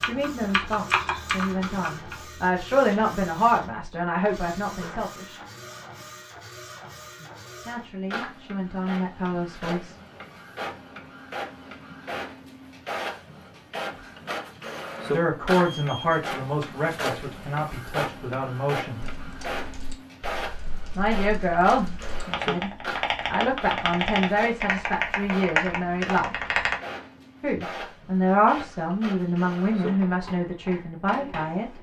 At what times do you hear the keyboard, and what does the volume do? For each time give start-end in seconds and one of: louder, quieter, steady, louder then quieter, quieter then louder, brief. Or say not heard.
0.0-2.1 brief
19.0-26.8 louder.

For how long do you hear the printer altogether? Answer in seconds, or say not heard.
32 s.